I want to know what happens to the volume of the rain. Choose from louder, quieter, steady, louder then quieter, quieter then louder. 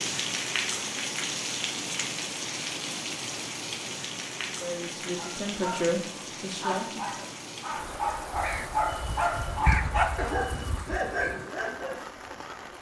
quieter.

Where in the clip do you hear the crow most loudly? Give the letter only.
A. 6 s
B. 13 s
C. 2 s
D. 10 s
D.